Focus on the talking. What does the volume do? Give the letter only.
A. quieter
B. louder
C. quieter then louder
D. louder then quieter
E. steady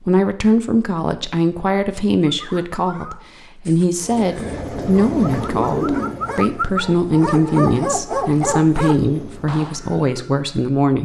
E.